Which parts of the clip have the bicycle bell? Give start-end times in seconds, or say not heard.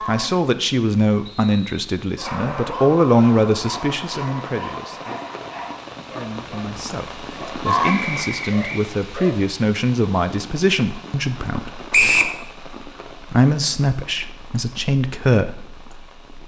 not heard.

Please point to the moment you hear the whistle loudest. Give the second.
12 s.